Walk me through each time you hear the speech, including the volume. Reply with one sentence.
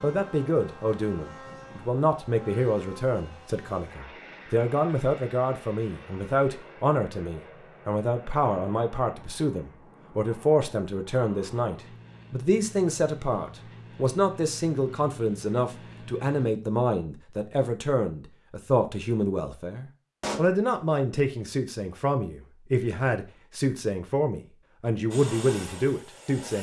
You can hear the speech from 0.0 to 26.5 s, at a steady volume.